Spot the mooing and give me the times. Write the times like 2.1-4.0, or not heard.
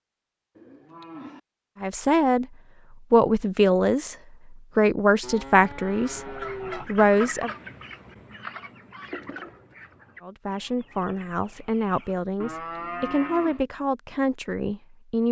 0.6-1.4, 5.2-6.8, 12.4-13.7.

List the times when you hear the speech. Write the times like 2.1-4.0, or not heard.
1.8-2.5, 3.1-7.5, 10.2-15.2.